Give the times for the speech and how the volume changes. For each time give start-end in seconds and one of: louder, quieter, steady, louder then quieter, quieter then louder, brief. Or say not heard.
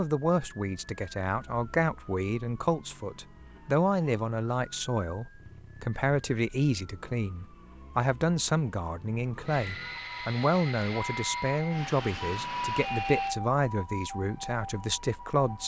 0.0-15.6 steady.